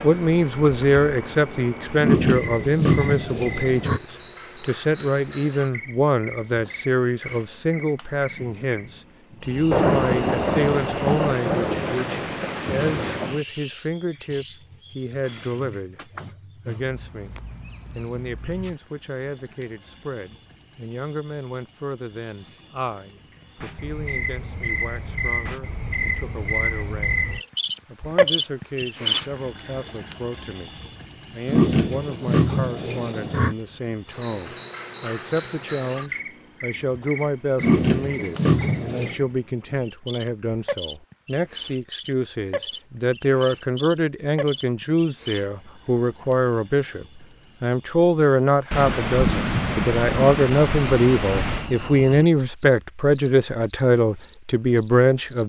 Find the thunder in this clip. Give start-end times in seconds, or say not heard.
9.7-13.4, 48.7-51.7.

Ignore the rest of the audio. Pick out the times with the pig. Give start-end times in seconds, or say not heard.
2.0-4.0, 31.4-33.5, 37.6-39.1.